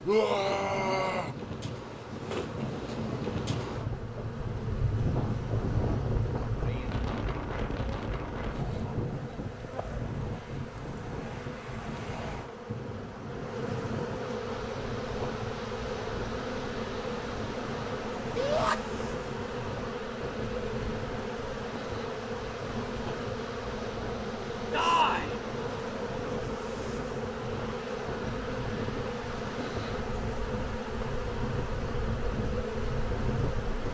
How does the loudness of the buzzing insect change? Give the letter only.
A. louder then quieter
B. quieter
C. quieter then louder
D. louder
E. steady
D.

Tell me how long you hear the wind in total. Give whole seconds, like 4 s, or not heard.
34 s.